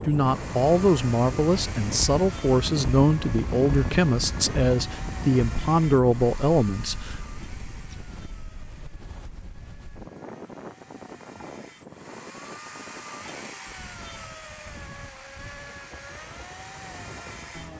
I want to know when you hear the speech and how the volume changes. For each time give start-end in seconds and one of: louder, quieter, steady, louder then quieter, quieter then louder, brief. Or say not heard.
0.1-7.2 steady.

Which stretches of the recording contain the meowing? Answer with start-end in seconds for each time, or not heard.
not heard.